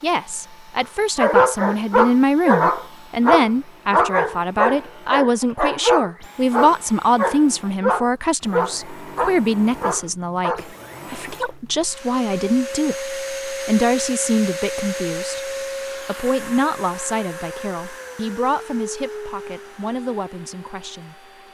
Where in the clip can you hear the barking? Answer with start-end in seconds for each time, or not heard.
1.1-10.7.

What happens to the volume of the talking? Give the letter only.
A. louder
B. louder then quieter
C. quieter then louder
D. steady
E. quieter
E.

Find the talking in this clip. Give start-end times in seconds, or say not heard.
0.0-21.2.